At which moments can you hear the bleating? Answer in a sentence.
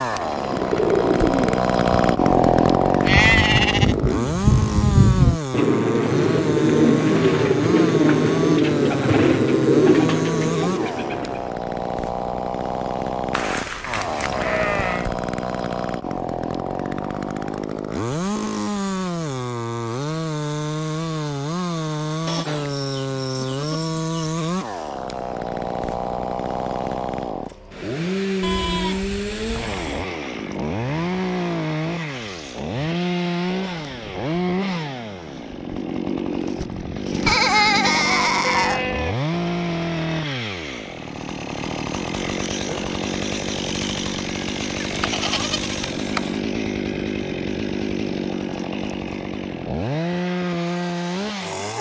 You can hear the bleating from 3.0 to 4.0 s, from 13.3 to 15.1 s, from 22.2 to 24.3 s, from 28.4 to 30.0 s, from 37.2 to 39.1 s and from 44.8 to 46.4 s.